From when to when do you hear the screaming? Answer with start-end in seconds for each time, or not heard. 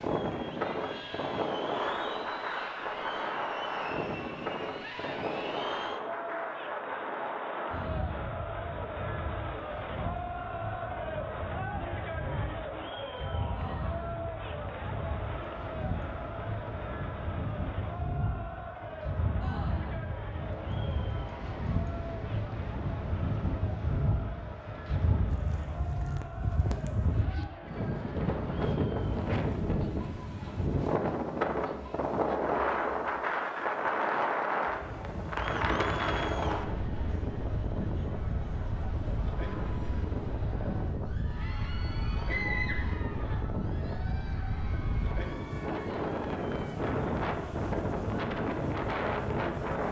42.2-43.4.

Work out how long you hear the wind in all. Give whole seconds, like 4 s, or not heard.
50 s.